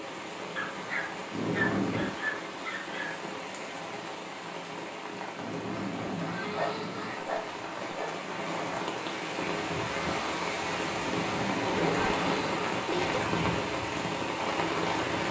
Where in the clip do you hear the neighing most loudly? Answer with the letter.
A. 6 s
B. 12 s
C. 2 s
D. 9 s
C.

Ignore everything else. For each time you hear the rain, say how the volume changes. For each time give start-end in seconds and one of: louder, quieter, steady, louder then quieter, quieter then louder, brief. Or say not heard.
0.0-15.2 louder.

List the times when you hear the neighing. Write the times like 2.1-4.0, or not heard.
1.3-2.1, 5.3-7.2, 10.9-12.8.